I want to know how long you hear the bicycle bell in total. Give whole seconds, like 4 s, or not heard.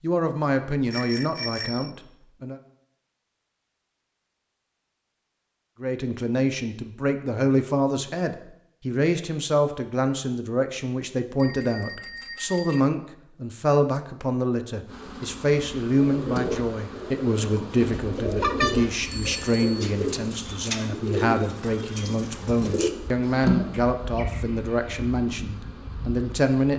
4 s.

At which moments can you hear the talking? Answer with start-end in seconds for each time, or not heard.
0.0-2.6, 5.8-26.7.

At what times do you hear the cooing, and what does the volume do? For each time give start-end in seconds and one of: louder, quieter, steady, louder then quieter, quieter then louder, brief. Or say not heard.
15.9-23.8 steady.